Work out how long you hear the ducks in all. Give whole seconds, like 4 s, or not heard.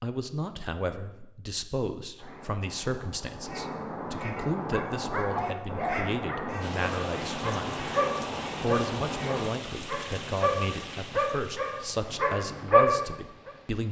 7 s.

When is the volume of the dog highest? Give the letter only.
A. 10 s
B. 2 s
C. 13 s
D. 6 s
C.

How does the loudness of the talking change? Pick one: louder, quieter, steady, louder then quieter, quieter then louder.
steady.